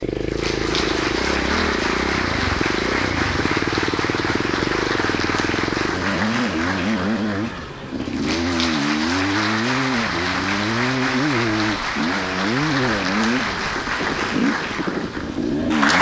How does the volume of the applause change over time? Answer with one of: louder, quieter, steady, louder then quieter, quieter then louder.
steady.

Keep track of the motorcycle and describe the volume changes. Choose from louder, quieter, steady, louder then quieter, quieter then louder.
steady.